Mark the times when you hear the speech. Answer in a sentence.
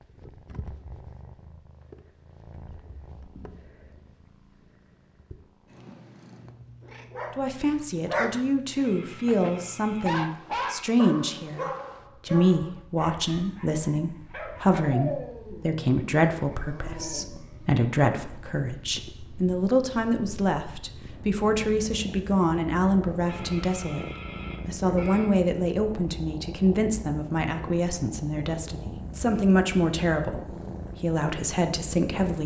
The speech can be heard from 7.3 to 24.1 s and from 24.6 to 32.4 s.